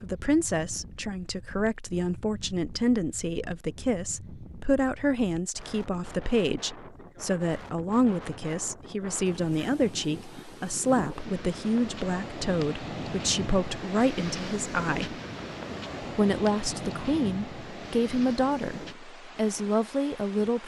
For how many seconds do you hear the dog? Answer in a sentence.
The dog can't be heard in this clip.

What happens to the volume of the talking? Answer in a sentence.
The loudness of the talking stays about the same.